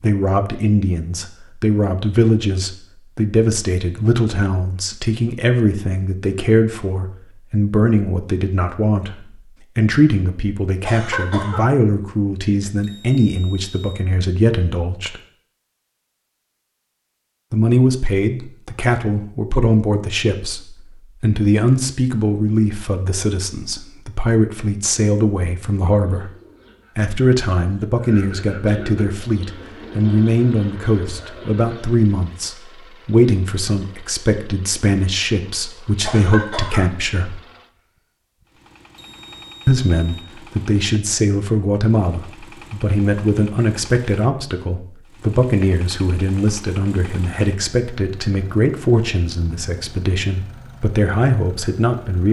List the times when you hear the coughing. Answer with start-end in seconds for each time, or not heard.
10.8-11.7, 36.0-36.9.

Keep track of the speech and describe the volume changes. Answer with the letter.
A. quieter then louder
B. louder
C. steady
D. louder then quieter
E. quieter
C.